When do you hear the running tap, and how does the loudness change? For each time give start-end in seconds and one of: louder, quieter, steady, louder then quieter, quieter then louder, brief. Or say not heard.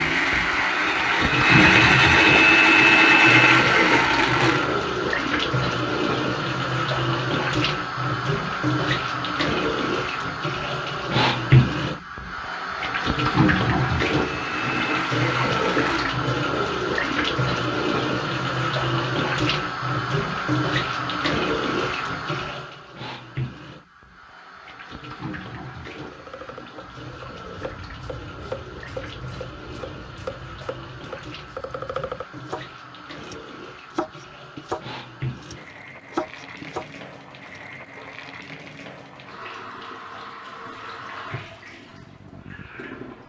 0.0-43.2 quieter.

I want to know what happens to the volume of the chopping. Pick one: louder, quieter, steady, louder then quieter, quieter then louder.
louder.